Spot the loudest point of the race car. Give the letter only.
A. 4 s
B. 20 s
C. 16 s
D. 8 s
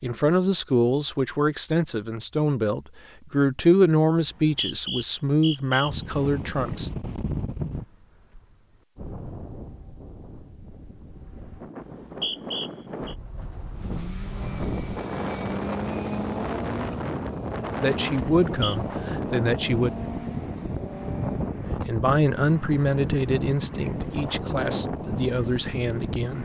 C.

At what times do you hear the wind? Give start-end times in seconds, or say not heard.
5.8-26.4.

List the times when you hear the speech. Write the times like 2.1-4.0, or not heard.
0.0-6.9, 17.8-19.9, 21.8-26.4.